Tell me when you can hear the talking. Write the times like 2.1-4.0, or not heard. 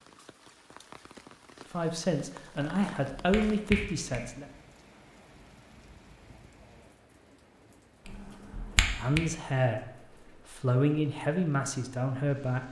1.7-4.5, 8.9-12.6.